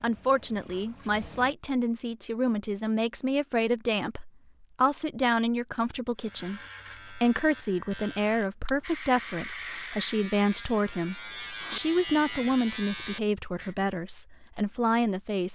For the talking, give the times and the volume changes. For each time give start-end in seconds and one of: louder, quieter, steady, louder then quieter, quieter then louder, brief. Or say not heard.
0.0-15.5 steady.